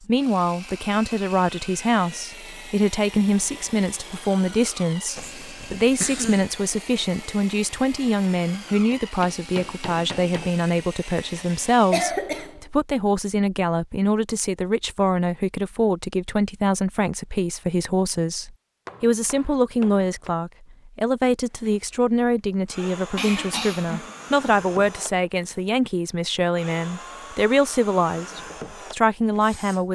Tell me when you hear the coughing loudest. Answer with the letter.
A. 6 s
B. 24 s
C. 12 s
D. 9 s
C.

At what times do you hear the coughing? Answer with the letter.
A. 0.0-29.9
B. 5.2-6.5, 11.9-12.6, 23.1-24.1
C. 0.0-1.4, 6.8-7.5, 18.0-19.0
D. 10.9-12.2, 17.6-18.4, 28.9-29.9
B.